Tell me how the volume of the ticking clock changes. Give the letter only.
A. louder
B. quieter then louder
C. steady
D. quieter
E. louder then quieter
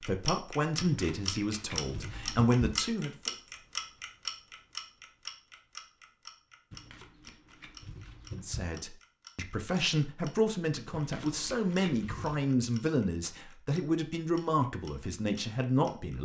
D.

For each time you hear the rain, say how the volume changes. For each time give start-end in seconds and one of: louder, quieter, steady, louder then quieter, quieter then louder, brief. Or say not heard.
not heard.